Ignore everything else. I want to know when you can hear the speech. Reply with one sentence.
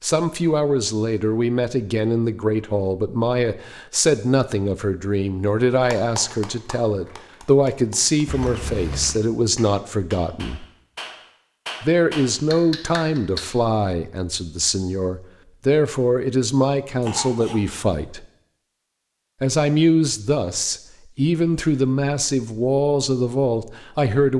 The speech can be heard from 0.0 to 10.7 s, from 11.8 to 18.2 s and from 19.4 to 24.3 s.